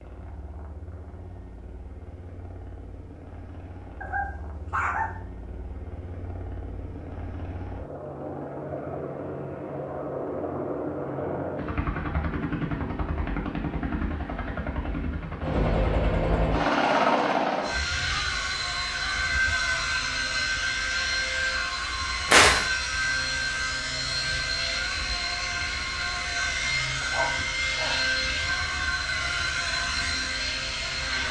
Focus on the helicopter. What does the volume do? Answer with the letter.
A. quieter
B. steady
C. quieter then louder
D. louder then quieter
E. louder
E.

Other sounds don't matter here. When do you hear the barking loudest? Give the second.
5 s.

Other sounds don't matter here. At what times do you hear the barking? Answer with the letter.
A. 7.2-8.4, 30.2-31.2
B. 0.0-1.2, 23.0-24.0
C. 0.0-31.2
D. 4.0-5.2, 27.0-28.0
D.